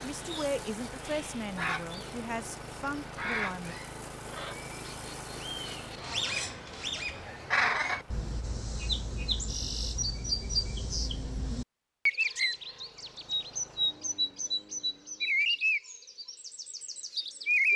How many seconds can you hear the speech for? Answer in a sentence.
You can hear the speech for 4 seconds altogether.